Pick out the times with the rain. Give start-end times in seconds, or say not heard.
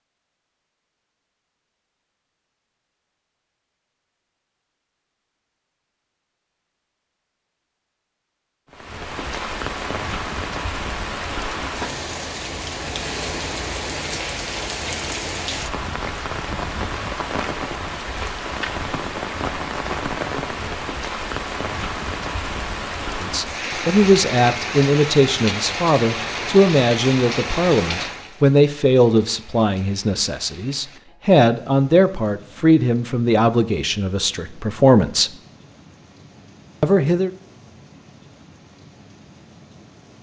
8.7-40.1.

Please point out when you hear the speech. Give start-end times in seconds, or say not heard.
23.2-35.3, 36.8-37.3.